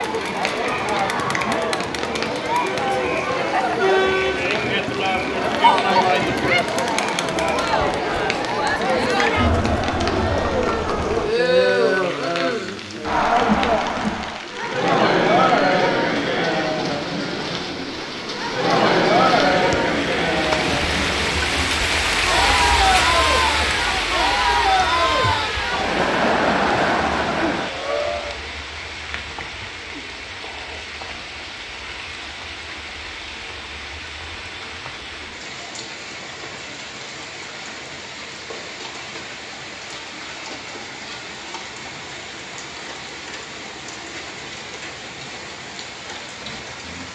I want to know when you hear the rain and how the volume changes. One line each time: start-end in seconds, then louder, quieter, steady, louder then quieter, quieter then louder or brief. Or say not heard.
0.0-47.1 louder then quieter.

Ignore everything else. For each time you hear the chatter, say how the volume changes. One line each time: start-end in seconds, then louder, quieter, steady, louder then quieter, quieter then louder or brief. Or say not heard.
0.0-28.4 steady.